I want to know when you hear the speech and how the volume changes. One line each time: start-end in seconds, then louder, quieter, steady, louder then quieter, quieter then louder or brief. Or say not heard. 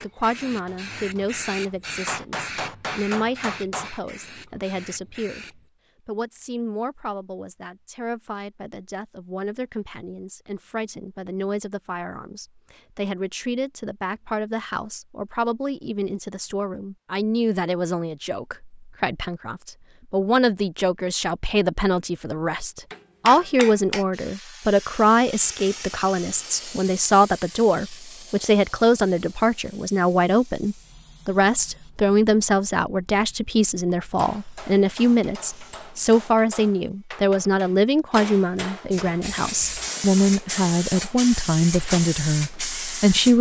0.0-43.3 louder.